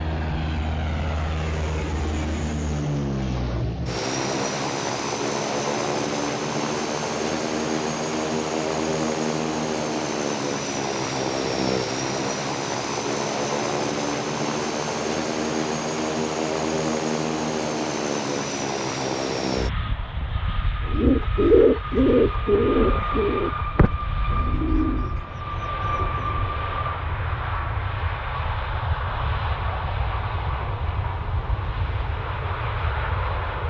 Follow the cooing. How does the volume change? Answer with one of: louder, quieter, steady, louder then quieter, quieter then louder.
quieter.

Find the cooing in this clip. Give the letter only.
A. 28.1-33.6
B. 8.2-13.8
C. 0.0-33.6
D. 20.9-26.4
D.